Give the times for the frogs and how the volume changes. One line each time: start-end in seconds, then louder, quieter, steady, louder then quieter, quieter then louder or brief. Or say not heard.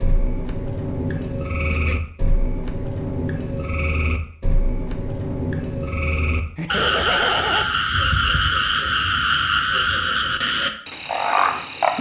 0.0-11.9 louder.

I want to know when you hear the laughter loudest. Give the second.
7 s.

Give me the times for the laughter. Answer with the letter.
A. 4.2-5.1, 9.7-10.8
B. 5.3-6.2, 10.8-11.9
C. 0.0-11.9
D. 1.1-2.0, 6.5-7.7
D.